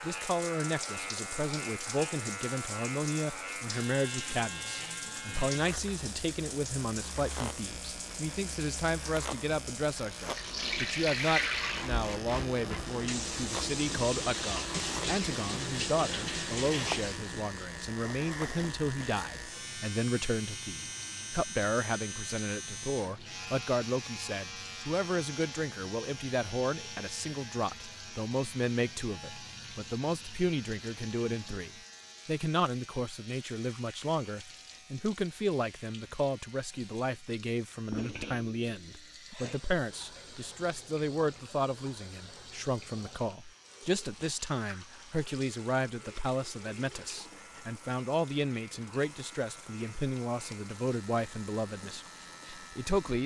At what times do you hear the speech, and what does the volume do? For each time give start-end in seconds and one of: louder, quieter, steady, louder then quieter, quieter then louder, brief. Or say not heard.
0.0-53.2 steady.